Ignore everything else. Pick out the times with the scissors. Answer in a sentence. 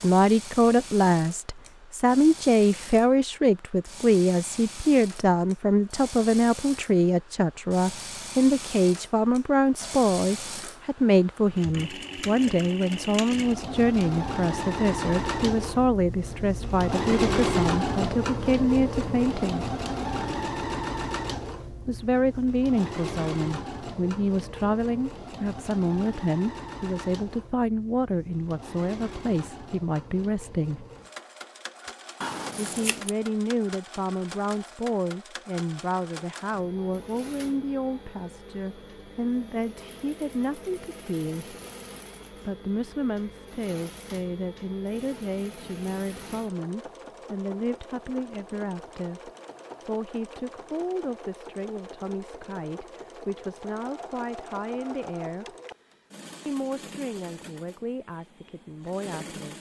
You can hear the scissors from 32.2 to 33.1 s.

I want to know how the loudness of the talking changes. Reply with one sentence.
The loudness of the talking goes down.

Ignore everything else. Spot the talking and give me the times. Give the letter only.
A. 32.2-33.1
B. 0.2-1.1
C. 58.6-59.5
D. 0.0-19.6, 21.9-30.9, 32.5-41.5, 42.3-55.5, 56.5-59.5
D.